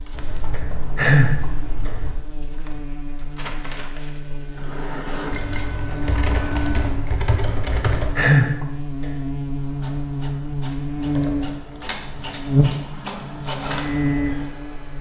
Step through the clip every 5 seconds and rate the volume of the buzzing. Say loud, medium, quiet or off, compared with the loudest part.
quiet, medium, loud.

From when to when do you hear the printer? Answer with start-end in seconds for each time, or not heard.
0.0-6.8, 9.6-14.9.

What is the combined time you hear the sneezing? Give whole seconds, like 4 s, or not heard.
3 s.